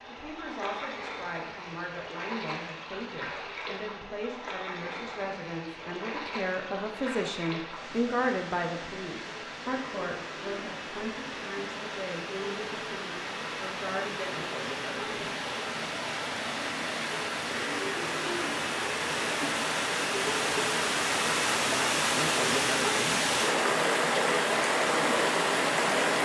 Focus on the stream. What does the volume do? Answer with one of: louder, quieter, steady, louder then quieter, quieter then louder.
louder.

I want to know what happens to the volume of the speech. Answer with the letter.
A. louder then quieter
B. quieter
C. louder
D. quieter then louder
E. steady
A.